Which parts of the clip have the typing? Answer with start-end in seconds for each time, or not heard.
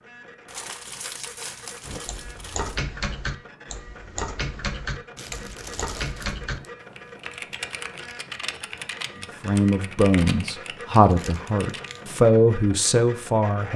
1.9-11.9.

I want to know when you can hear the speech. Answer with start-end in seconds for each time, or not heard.
9.4-13.7.